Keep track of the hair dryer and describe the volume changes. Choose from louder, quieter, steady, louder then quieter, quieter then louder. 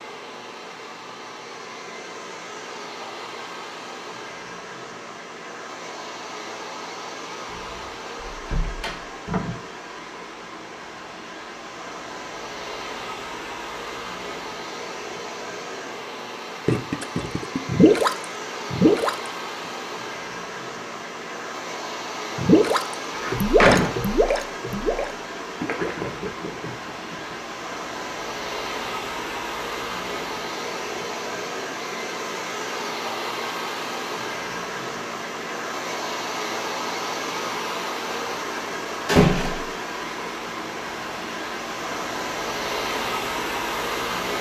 louder.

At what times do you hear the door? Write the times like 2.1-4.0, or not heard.
7.5-9.6, 23.1-23.9, 39.0-39.6.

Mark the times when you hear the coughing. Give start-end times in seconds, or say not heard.
not heard.